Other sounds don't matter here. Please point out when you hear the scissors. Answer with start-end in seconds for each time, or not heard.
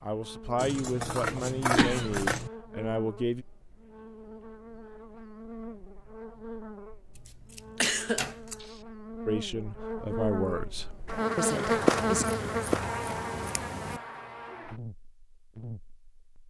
0.6-2.5, 7.2-8.6, 11.9-14.0.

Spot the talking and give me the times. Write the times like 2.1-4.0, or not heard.
0.0-3.5, 9.2-12.2.